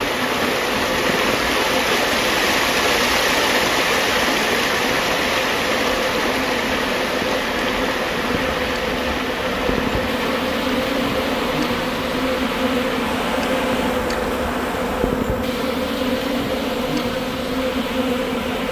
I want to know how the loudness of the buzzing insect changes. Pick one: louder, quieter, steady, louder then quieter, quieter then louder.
louder.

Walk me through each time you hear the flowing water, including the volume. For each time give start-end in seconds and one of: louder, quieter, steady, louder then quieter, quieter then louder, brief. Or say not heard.
0.0-15.2 quieter.